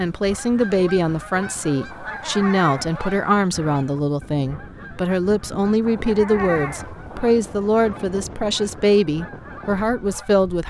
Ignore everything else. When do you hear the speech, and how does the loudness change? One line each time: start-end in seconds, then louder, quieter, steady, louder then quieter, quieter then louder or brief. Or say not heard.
0.0-10.6 steady.